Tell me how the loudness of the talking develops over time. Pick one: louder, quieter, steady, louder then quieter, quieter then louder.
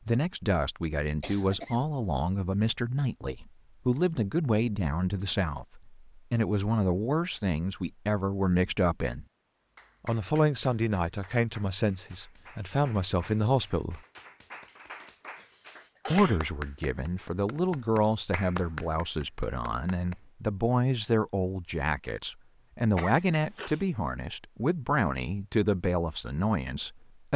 steady.